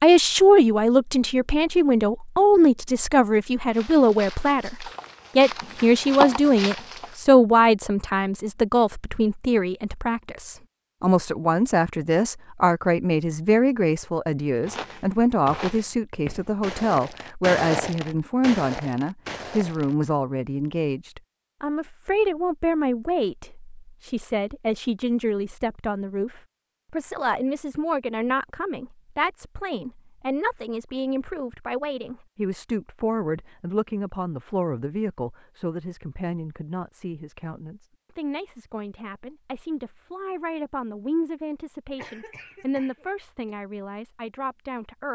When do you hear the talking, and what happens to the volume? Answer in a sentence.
The talking can be heard from 0.0 to 45.1 s, getting quieter.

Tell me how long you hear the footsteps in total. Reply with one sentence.
The footsteps can be heard for 9 seconds in total.